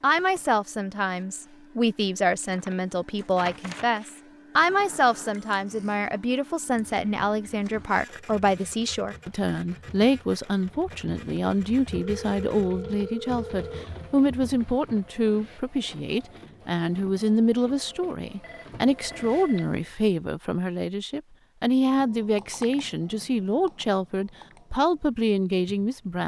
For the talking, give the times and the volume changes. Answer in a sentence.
The talking can be heard from 0.0 to 26.2 s, at a steady volume.